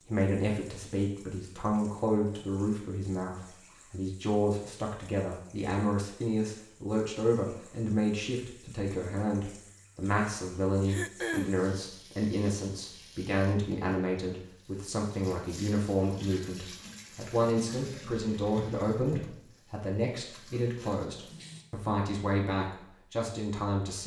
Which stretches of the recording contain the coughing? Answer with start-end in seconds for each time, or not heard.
10.8-11.6.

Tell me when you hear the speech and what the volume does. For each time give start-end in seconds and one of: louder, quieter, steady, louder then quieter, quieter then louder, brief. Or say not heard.
0.0-24.0 steady.